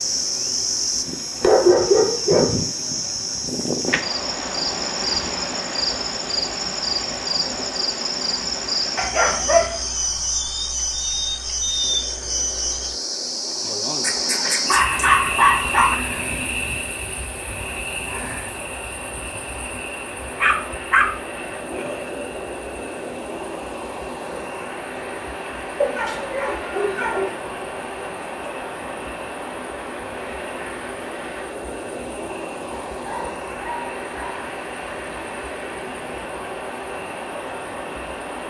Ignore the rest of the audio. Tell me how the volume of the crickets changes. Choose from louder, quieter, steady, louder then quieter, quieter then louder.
quieter.